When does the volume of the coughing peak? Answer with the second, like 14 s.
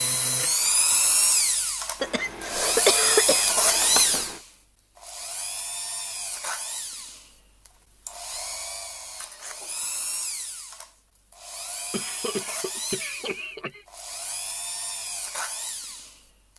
3 s.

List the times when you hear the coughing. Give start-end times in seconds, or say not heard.
2.0-4.4, 11.9-13.8.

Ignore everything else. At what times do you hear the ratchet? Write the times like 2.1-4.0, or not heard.
not heard.